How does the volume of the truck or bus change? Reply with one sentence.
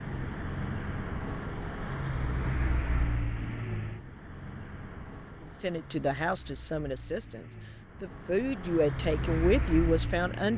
The loudness of the truck or bus goes down, then up.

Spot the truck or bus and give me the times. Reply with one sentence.
You can hear the truck or bus from 0.0 to 10.5 s.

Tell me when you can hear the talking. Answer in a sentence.
The talking can be heard from 5.6 to 10.5 s.